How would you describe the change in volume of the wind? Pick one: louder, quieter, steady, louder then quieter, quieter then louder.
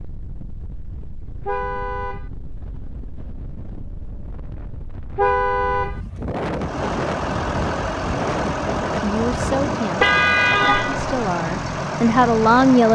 louder.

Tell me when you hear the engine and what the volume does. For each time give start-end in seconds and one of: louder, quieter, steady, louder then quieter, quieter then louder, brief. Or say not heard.
6.5-12.8 steady.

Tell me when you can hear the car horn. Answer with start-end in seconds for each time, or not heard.
1.4-2.3, 5.2-6.0, 9.9-11.2.